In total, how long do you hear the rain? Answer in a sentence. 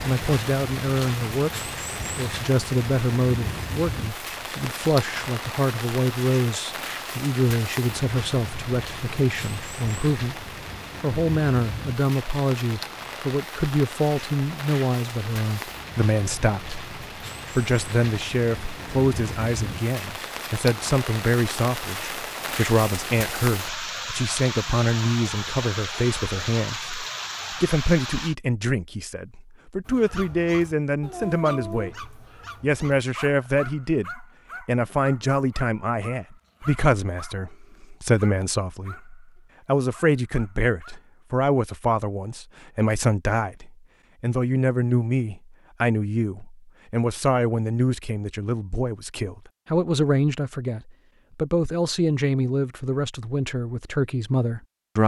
The rain can be heard for 28 seconds in total.